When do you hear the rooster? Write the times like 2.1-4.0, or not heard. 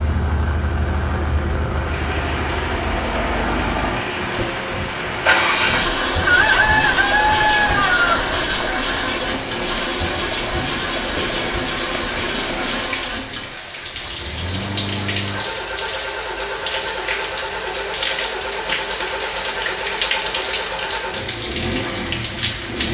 6.2-8.2.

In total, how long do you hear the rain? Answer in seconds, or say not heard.
23 s.